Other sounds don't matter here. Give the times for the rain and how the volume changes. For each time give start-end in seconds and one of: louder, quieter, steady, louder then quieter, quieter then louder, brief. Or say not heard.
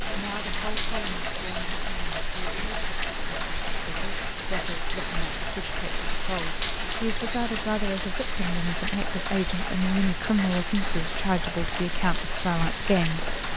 0.0-13.5 steady.